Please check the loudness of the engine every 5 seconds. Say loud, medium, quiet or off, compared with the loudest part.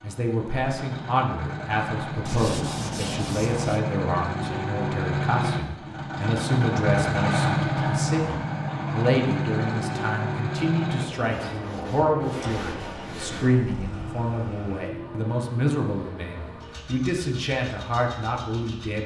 medium, loud, medium, quiet.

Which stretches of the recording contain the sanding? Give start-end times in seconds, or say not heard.
2.2-3.8, 11.2-13.6.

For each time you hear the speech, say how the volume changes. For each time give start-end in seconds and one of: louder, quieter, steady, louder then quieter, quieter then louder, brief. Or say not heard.
0.0-19.0 steady.